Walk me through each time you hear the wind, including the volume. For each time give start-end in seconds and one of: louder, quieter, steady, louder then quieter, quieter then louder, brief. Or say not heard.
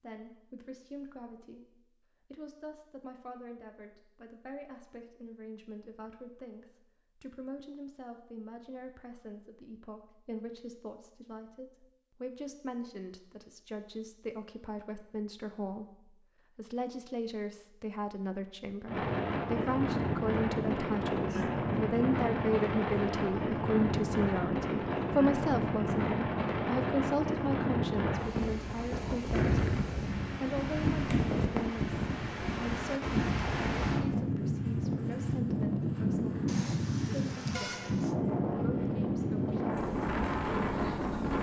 18.9-41.3 steady.